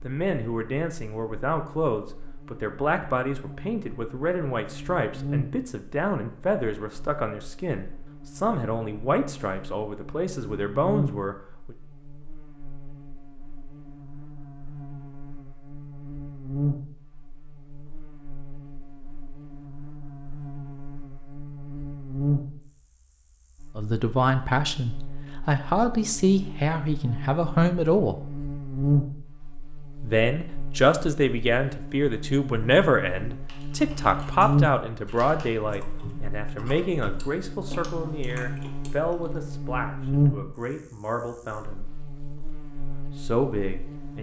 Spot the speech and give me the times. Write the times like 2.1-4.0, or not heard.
0.0-11.8, 23.8-28.2, 30.0-41.9, 43.1-44.1.